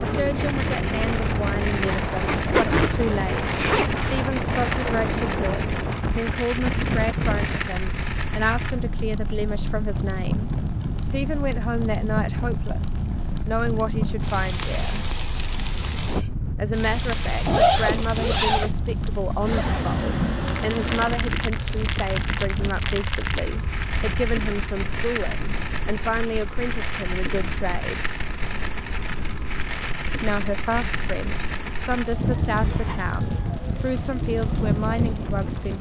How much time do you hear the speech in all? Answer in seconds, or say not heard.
32 s.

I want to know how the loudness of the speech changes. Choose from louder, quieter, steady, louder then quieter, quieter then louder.
steady.